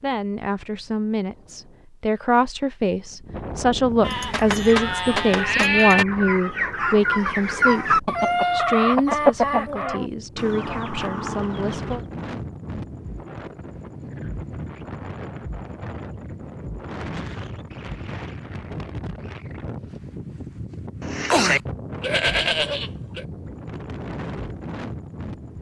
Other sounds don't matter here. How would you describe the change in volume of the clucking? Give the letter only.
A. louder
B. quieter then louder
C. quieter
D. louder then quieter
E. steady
D.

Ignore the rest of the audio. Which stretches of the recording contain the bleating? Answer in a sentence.
You can hear the bleating from 4.0 to 6.0 s and from 21.0 to 23.2 s.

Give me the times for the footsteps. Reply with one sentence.
You can't hear the footsteps here.